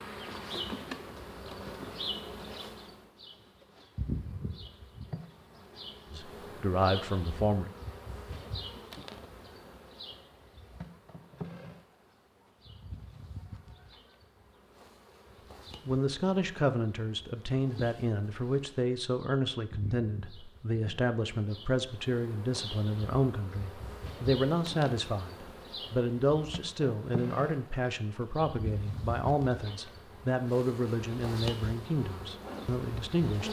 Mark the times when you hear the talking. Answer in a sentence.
You can hear the talking from 6.1 to 7.7 s and from 15.8 to 33.4 s.